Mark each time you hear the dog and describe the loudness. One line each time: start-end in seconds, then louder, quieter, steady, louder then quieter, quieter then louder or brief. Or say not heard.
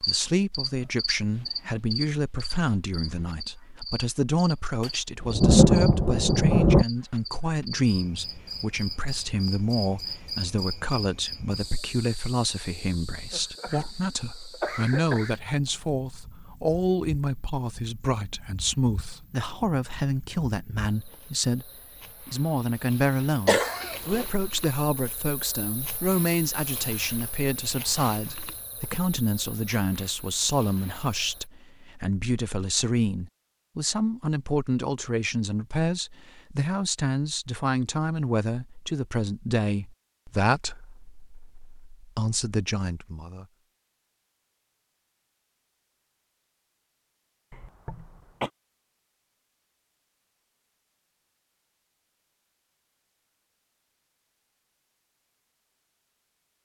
not heard.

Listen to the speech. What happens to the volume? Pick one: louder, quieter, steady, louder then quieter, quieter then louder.
steady.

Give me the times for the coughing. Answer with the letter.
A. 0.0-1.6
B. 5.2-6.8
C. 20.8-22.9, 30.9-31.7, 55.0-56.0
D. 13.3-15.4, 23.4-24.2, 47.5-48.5
D.